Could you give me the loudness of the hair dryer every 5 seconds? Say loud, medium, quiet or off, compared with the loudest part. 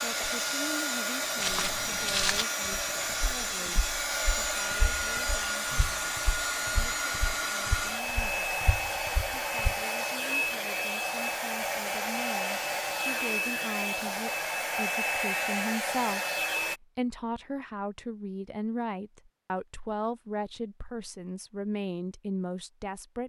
loud, loud, loud, loud, off.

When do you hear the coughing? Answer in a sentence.
You can't hear the coughing here.